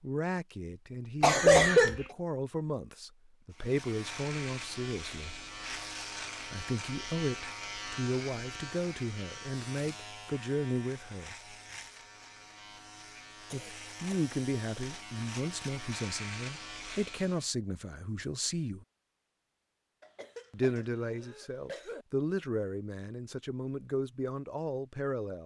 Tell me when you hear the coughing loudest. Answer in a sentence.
The loudest moment of the coughing is at 2 seconds.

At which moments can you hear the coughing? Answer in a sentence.
You can hear the coughing from 1.2 to 2.0 s, from 13.5 to 14.8 s and from 20.0 to 22.1 s.